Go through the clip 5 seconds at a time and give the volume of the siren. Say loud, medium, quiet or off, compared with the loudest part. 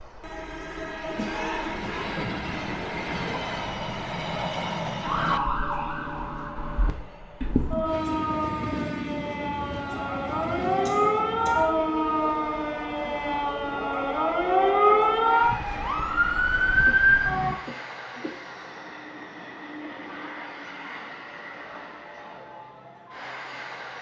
off, medium, loud, loud, off.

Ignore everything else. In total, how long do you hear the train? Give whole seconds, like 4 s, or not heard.
24 s.